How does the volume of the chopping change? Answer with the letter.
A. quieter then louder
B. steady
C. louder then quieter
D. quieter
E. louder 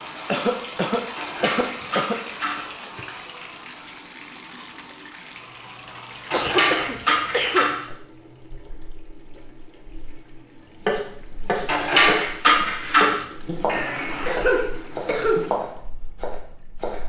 D.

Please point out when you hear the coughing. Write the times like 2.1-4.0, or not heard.
0.2-2.2, 6.3-7.7, 13.7-15.5.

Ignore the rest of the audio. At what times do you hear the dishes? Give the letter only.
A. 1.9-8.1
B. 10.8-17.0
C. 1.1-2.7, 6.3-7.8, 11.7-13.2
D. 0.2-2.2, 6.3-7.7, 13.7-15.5
C.